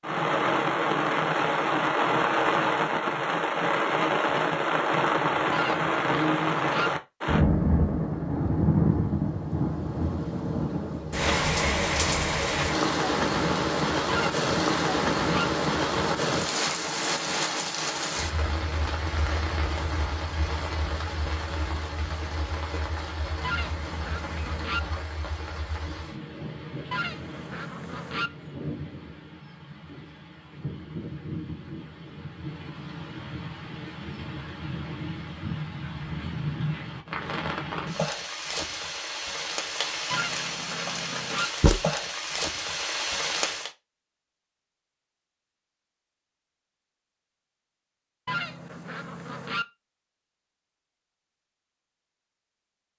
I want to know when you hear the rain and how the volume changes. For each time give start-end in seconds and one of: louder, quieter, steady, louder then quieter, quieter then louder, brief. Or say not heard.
0.0-43.7 quieter then louder.